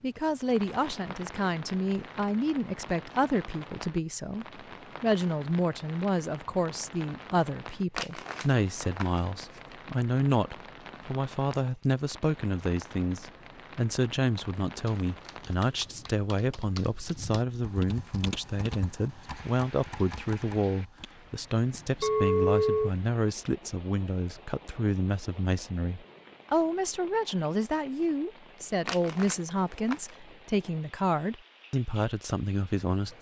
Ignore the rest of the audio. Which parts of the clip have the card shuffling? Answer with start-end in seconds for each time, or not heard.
7.9-9.8, 28.9-30.2.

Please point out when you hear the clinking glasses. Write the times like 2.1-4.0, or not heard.
11.6-12.0, 22.0-22.9.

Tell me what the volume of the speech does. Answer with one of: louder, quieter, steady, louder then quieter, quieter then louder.
steady.